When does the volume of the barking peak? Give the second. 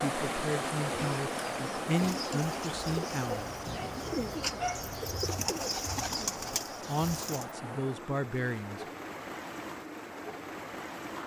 5 s.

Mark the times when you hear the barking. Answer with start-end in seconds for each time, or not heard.
3.2-5.5.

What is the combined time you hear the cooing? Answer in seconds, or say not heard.
7 s.